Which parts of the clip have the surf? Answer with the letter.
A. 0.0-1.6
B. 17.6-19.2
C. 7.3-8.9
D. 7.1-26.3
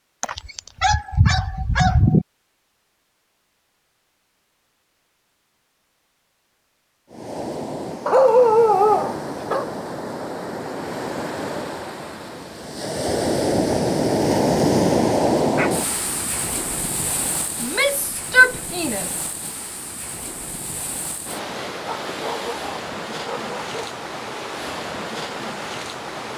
D.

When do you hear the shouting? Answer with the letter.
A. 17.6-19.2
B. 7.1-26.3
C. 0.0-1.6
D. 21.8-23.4
A.